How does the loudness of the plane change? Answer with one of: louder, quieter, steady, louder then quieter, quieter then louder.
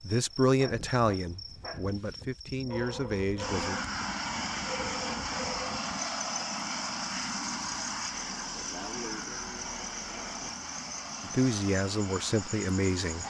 quieter.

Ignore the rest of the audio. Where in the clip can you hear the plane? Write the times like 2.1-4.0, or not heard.
3.4-13.2.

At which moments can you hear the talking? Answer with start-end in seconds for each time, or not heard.
0.0-3.8, 11.2-13.2.